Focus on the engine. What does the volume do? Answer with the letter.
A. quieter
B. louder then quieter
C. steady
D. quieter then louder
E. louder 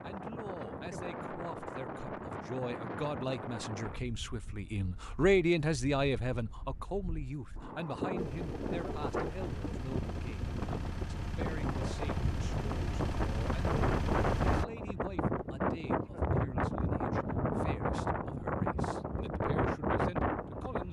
E.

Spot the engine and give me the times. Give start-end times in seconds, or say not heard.
8.2-14.7.